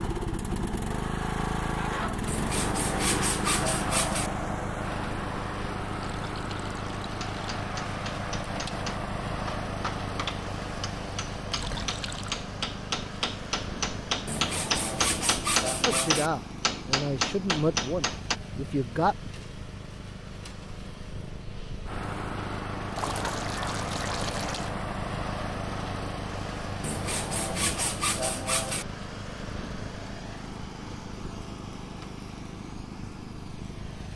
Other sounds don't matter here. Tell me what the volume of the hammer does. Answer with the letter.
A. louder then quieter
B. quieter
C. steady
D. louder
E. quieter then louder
D.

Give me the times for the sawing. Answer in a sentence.
You can hear the sawing from 2.2 to 4.3 s, from 14.2 to 16.3 s and from 26.8 to 28.9 s.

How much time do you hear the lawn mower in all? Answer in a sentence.
The lawn mower can be heard for 34 seconds in total.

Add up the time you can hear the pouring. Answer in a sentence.
You can hear the pouring for 4 seconds altogether.